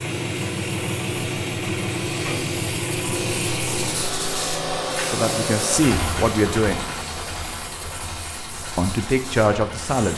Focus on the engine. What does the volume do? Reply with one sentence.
The loudness of the engine goes down.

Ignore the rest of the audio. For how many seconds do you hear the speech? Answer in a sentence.
You can hear the speech for 3 seconds altogether.